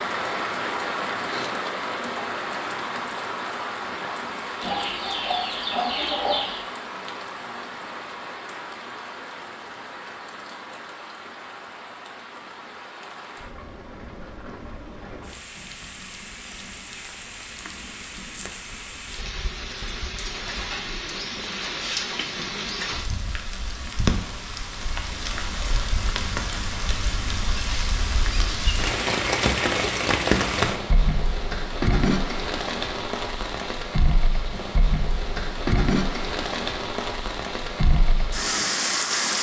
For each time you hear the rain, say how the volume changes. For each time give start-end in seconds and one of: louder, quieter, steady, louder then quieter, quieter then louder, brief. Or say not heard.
0.0-39.3 quieter then louder.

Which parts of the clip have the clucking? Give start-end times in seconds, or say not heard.
4.6-6.7.